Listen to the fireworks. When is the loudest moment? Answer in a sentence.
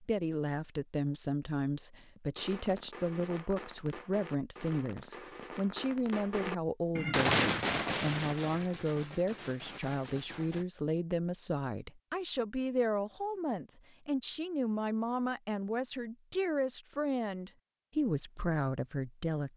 The loudest moment of the fireworks is at 7 seconds.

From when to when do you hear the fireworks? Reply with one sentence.
You can hear the fireworks from 2.4 to 10.7 s.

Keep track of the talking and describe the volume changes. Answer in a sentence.
The loudness of the talking stays about the same.